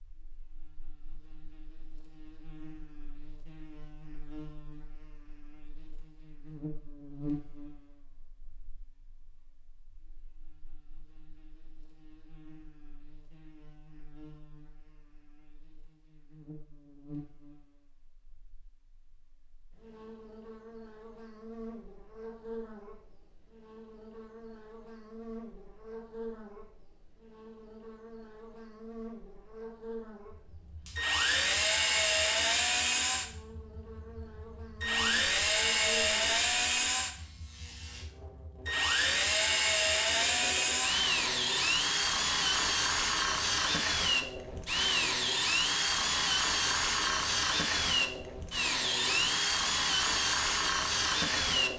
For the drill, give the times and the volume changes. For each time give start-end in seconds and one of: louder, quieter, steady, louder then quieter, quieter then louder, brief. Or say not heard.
30.3-51.7 steady.